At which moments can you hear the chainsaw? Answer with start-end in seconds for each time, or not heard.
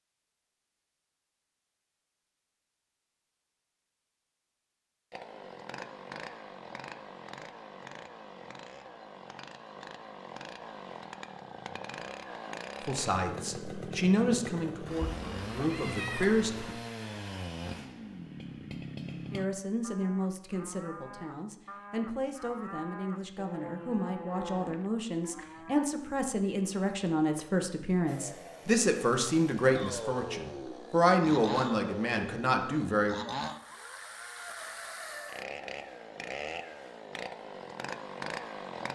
5.1-19.4, 28.1-38.8.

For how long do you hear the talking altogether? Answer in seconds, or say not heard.
18 s.